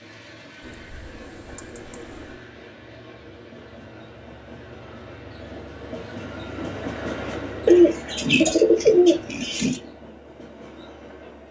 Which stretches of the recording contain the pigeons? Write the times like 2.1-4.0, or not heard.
0.7-2.4, 7.7-9.8.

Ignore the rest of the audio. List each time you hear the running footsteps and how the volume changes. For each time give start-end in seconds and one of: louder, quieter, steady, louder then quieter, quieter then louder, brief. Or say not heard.
not heard.